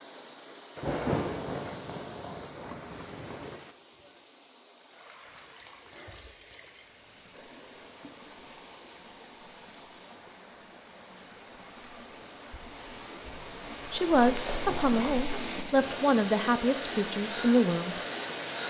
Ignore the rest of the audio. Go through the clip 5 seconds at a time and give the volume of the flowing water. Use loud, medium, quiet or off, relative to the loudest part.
quiet, quiet, medium, loud.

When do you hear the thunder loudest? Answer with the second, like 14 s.
1 s.